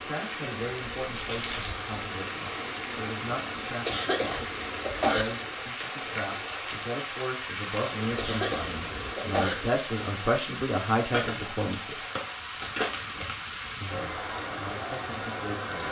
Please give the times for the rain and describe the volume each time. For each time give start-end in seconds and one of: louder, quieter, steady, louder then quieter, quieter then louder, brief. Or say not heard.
0.0-15.8 steady.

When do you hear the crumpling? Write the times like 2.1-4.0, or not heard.
1.1-1.8, 5.7-6.9, 11.1-13.3.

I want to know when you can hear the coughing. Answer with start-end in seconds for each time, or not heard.
3.9-5.2, 8.2-9.6.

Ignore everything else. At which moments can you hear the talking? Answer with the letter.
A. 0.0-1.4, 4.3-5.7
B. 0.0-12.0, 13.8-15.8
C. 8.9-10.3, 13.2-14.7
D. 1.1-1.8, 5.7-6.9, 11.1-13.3
B.